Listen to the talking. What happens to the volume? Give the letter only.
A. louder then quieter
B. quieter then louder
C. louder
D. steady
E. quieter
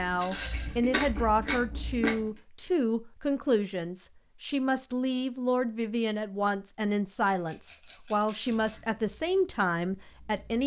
D.